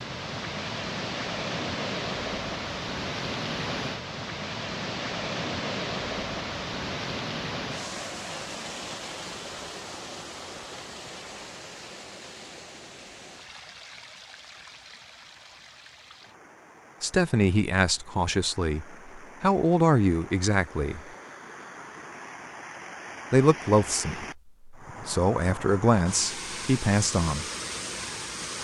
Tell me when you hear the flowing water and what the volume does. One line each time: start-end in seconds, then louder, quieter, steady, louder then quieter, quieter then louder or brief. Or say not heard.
0.0-28.5 quieter then louder.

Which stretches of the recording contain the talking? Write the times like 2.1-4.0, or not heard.
17.0-21.0, 23.3-27.4.